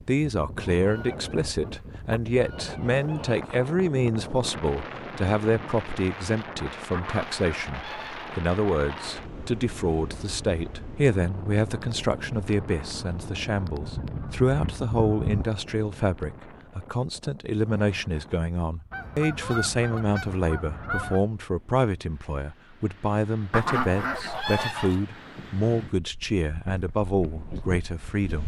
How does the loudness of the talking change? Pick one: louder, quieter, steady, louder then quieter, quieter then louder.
steady.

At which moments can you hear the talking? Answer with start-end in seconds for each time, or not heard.
0.1-28.4.